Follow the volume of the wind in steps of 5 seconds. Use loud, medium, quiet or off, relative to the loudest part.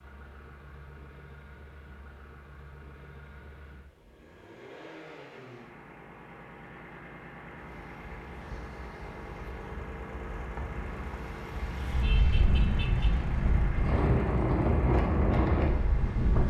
off, quiet, loud, loud.